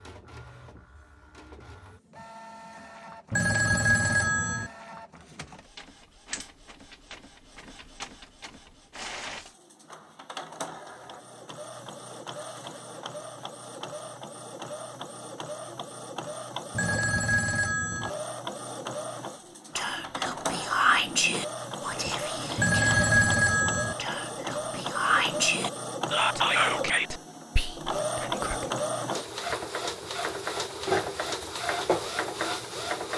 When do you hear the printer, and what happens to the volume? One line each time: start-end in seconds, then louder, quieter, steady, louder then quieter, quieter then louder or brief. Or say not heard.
0.0-33.1 louder.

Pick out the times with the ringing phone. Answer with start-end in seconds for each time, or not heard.
3.3-4.7, 16.8-18.1, 22.6-23.9.